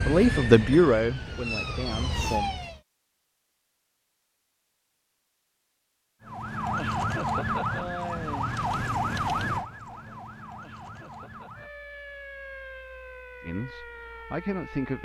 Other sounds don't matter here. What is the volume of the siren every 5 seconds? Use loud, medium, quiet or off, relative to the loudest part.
loud, loud, quiet.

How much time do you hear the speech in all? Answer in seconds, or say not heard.
4 s.